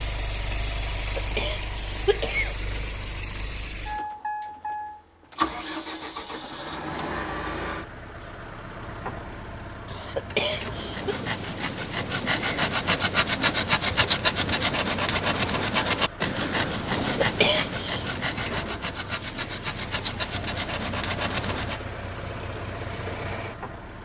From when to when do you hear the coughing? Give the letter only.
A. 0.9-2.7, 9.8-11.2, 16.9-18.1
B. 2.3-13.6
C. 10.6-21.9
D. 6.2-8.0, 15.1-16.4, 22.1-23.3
A.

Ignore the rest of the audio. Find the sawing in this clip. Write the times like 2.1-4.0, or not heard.
10.6-21.9.